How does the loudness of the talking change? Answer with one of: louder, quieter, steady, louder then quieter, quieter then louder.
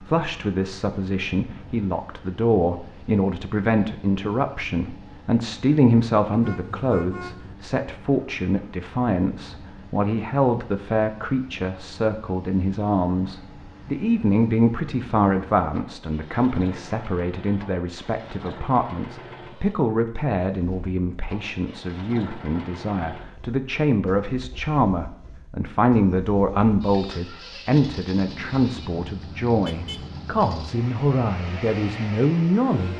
steady.